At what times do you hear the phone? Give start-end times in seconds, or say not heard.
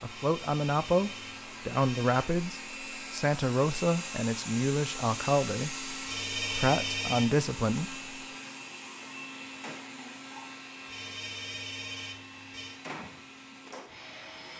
0.1-2.2, 6.0-7.3, 10.8-12.8.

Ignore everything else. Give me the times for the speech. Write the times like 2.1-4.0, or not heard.
0.0-8.0.